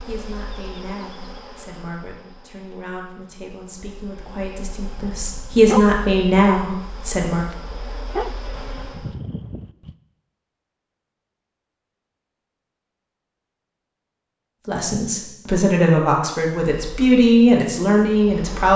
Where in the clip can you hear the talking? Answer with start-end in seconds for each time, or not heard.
0.1-7.5, 14.7-18.7.